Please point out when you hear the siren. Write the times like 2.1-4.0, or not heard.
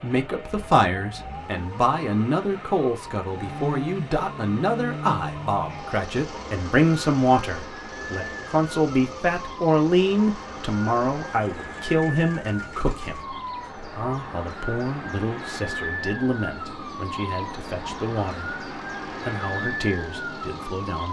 0.0-21.0.